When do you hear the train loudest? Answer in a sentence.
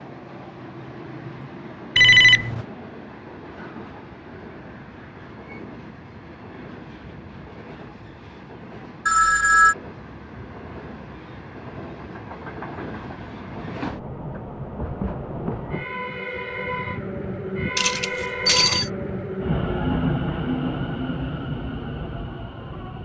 The volume of the train peaks at 20 seconds.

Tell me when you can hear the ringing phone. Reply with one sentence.
You can hear the ringing phone from 1.9 to 2.6 s, from 9.1 to 9.8 s and from 17.8 to 18.9 s.